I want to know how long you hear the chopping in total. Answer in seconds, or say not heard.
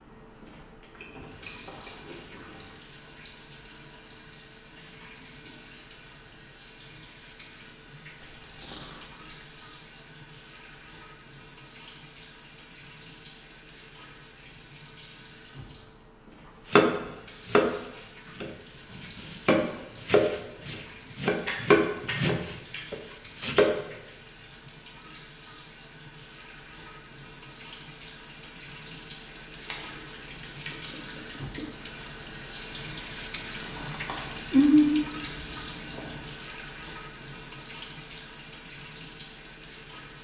7 s.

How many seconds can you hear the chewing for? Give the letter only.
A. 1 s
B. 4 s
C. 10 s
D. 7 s
C.